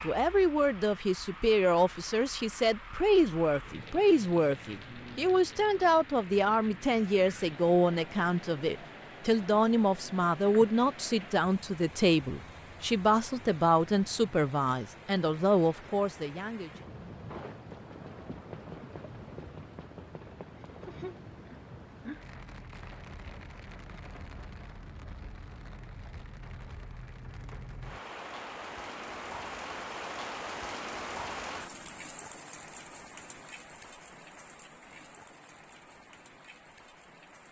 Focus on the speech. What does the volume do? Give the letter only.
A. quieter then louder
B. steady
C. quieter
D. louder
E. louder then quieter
B.